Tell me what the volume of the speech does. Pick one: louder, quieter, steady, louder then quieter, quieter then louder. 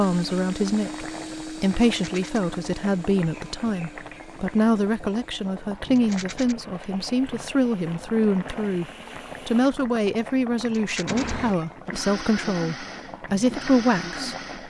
steady.